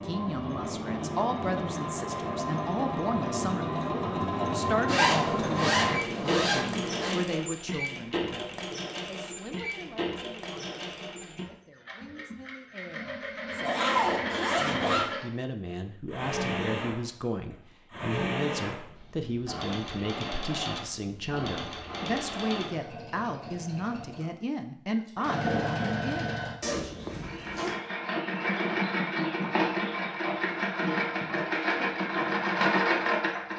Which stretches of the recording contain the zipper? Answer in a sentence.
The zipper can be heard from 4.8 to 7.2 s, from 13.6 to 15.1 s and from 26.6 to 27.8 s.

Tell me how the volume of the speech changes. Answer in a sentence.
The volume of the speech goes down, then up.